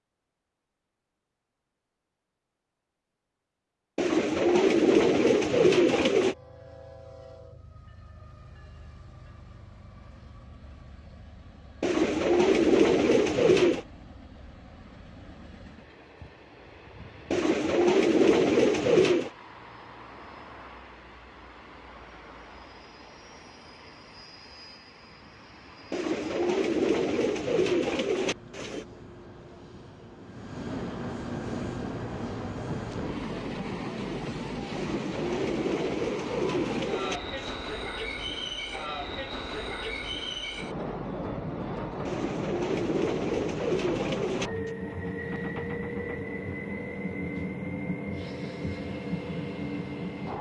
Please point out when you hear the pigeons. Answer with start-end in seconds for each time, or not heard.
4.0-6.3, 11.8-13.8, 17.3-19.3, 25.9-28.9, 34.8-37.5, 42.0-44.7.